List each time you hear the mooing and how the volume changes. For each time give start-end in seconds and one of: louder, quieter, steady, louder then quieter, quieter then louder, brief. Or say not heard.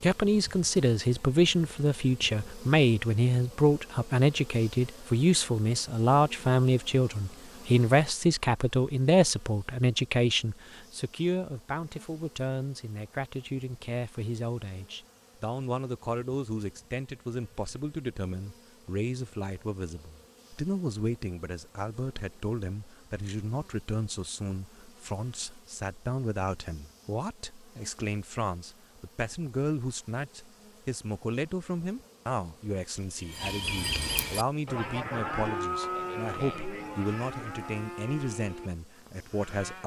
33.2-39.8 quieter.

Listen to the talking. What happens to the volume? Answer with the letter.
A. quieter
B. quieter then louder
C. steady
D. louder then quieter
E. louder
A.